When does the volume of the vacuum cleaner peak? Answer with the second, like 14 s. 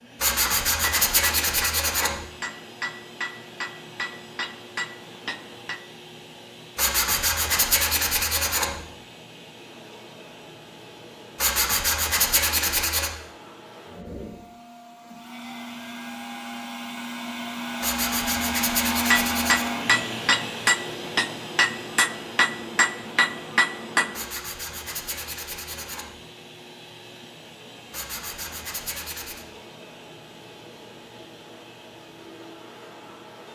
19 s.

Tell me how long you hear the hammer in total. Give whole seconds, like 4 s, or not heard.
11 s.